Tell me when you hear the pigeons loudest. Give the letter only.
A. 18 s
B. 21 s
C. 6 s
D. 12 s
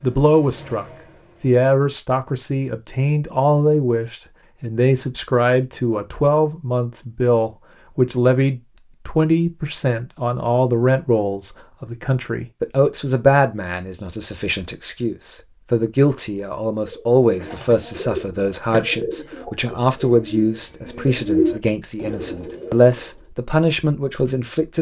B.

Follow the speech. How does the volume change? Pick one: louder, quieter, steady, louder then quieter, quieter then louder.
steady.